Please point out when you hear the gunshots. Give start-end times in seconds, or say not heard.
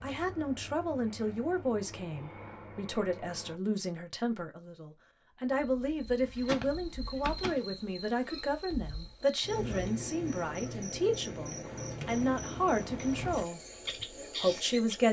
6.2-7.8.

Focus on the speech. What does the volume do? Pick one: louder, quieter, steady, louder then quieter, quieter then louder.
steady.